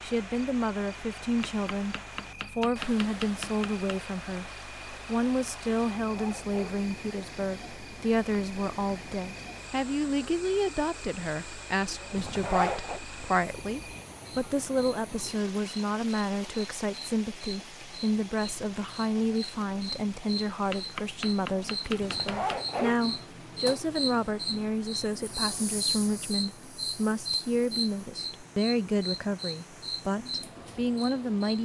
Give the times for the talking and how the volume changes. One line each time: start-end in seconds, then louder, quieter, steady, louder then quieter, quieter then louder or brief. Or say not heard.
0.0-31.6 steady.